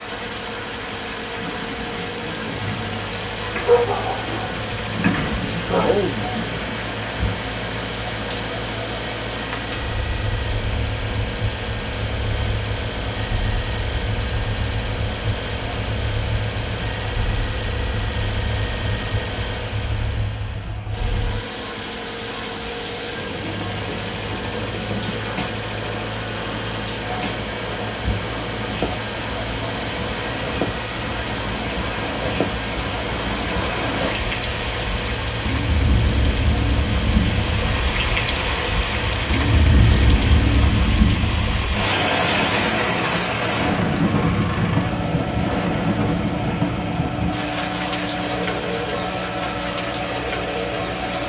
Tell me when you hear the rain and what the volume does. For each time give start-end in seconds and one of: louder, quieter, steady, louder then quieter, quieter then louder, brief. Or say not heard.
0.0-51.2 louder.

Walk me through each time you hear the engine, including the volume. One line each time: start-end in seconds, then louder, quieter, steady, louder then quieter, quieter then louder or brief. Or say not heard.
0.0-51.2 steady.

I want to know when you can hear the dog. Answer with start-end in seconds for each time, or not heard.
3.5-6.3.